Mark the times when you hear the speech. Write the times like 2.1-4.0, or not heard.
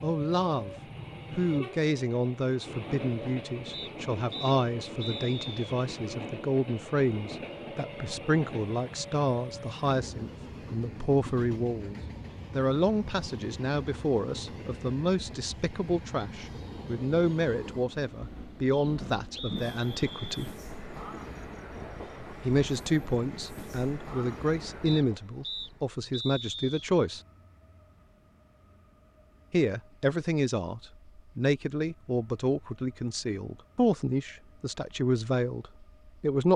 0.0-20.5, 22.4-27.2, 29.5-36.5.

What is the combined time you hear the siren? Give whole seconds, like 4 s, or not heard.
not heard.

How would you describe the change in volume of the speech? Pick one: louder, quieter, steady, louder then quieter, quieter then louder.
steady.